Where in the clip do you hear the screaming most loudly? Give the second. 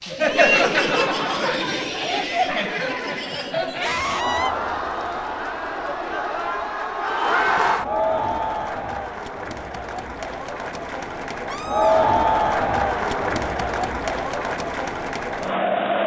4 s.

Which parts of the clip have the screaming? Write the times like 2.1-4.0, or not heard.
3.8-4.5, 11.4-12.2.